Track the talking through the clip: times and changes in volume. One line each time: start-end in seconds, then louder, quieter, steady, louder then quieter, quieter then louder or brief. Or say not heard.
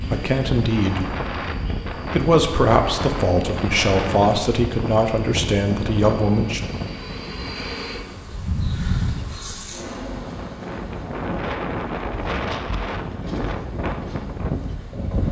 0.1-1.2 brief
2.1-6.7 steady.